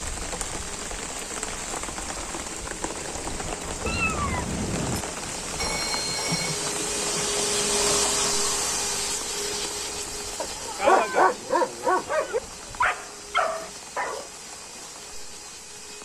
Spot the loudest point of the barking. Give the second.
11 s.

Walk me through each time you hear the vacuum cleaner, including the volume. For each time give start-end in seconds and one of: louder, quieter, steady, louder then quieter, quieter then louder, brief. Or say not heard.
0.1-15.9 louder then quieter.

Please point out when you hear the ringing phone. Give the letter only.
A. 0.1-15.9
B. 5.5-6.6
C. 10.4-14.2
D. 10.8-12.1
B.